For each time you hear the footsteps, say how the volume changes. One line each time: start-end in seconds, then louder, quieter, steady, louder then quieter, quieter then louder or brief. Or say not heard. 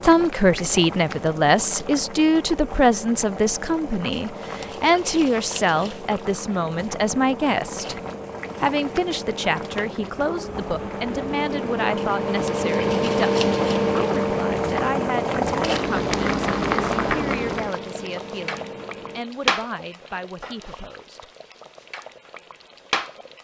not heard.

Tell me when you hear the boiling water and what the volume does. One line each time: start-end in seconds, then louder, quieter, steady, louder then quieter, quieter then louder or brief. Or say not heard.
0.0-23.3 louder then quieter.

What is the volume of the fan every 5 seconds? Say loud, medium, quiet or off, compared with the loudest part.
quiet, quiet, loud, medium, off.